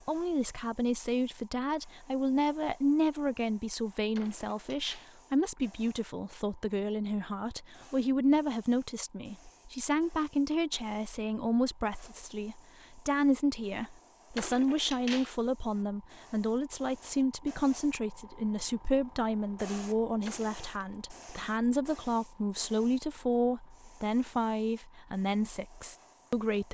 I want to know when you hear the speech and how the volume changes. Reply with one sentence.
The speech can be heard from 0.1 to 26.6 s, at a steady volume.